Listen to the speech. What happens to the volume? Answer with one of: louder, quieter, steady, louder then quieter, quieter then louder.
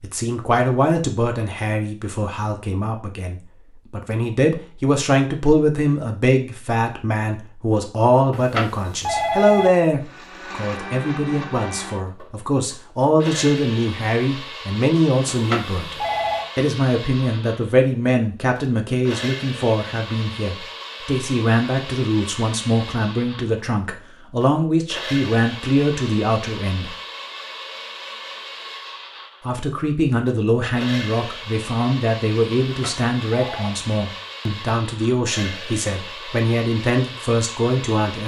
steady.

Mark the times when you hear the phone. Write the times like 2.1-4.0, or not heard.
8.3-9.7, 15.3-16.4, 32.6-33.7.